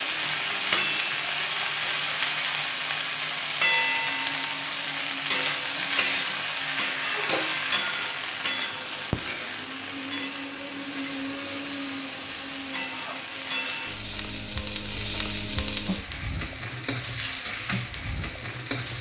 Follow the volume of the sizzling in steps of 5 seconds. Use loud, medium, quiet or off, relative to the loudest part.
loud, loud, medium, loud.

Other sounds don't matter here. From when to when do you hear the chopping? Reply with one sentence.
The chopping can't be heard in this clip.